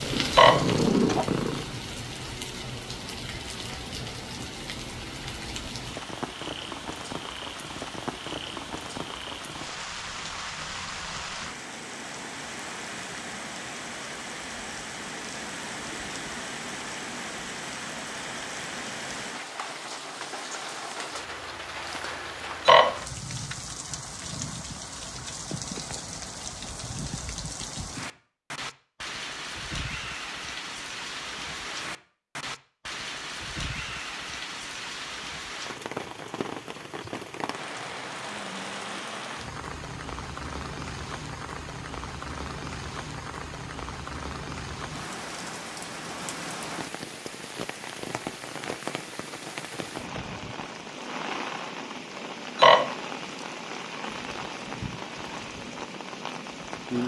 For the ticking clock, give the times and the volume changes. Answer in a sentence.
The ticking clock can't be heard in this clip.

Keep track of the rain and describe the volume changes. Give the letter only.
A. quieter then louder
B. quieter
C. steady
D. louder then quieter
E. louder
C.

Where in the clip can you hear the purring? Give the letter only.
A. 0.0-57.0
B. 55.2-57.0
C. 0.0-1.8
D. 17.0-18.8
C.